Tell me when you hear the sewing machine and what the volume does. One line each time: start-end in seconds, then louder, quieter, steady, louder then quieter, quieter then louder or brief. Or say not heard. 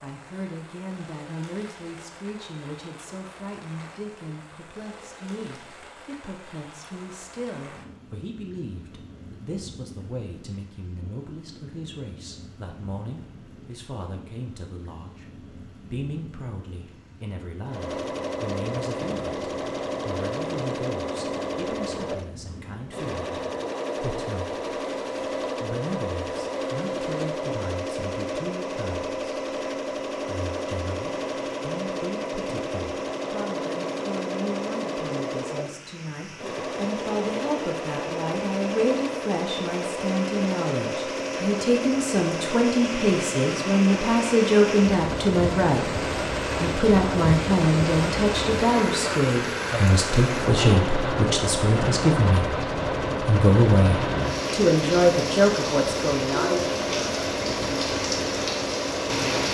17.6-59.4 steady.